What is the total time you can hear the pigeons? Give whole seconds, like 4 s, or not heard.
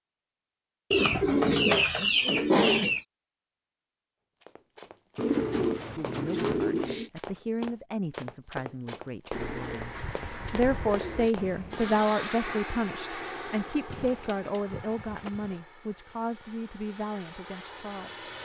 8 s.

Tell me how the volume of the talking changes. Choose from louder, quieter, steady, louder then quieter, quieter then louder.
louder then quieter.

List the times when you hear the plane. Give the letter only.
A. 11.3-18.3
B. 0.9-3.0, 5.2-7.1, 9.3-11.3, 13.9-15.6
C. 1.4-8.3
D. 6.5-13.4
A.